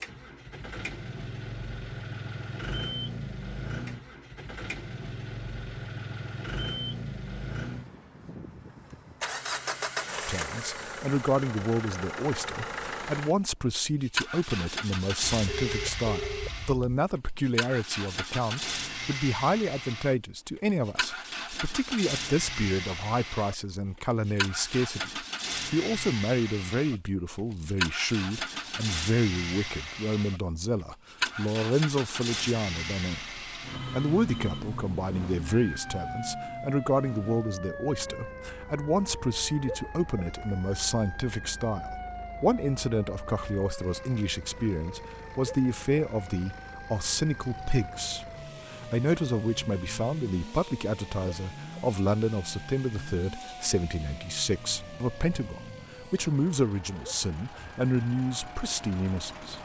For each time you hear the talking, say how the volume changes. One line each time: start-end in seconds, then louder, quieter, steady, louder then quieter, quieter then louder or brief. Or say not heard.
10.2-59.5 steady.